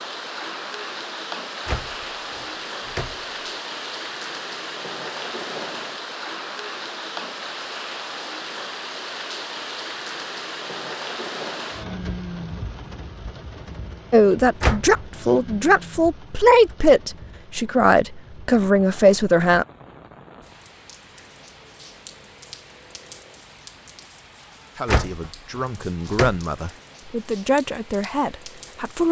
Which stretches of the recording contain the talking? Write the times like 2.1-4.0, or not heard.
14.1-19.6, 24.8-29.0.